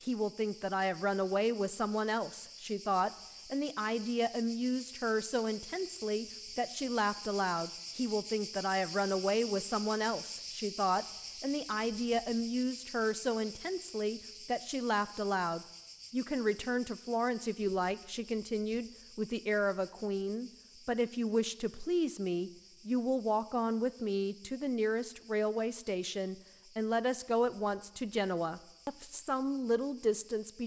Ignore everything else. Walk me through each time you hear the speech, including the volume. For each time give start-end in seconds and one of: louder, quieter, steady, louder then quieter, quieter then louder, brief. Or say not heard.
0.0-30.6 steady.